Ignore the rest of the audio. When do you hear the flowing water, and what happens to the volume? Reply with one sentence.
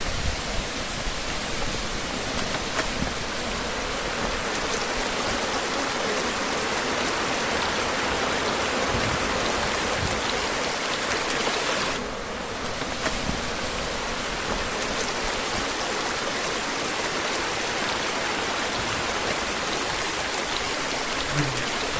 The flowing water can be heard from 0.0 to 21.9 s, at a steady volume.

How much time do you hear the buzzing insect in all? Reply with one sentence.
The buzzing insect can be heard for 22 seconds in total.